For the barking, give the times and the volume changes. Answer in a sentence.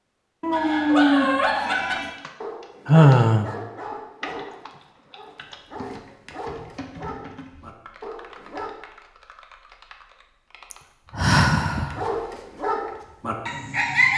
The barking can be heard from 0.5 to 8.8 s, getting quieter; and briefly from 11.9 to 14.1 s.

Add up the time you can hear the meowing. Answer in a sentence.
The meowing can be heard for 2 seconds in total.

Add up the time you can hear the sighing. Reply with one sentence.
You can hear the sighing for 2 seconds altogether.